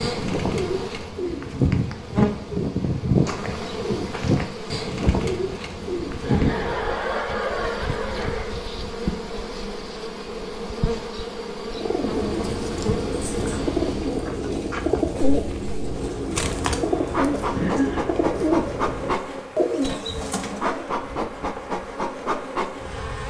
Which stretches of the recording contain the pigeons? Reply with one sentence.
The pigeons can be heard from 0.0 to 6.7 s and from 11.8 to 20.9 s.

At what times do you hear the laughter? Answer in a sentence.
You can hear the laughter from 6.2 to 8.6 s and from 17.5 to 18.1 s.